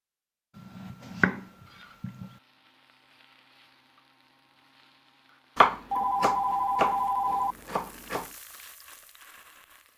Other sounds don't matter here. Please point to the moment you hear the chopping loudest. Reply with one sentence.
The volume of the chopping peaks at 6 seconds.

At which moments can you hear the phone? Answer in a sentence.
You can hear the phone from 5.9 to 7.5 s.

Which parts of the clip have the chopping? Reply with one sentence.
The chopping can be heard from 0.6 to 2.3 s and from 5.5 to 8.2 s.